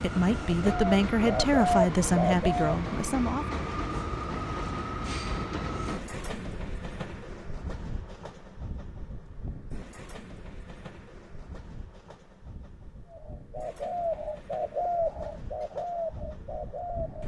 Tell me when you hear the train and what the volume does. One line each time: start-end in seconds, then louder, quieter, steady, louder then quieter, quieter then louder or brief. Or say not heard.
0.0-17.2 quieter.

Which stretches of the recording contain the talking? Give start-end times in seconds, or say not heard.
0.0-3.5.